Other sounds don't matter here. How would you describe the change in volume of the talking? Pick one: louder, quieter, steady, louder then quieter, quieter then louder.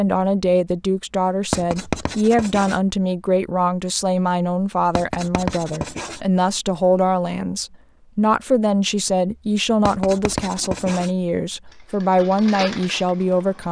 steady.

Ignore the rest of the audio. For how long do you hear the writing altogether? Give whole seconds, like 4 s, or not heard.
4 s.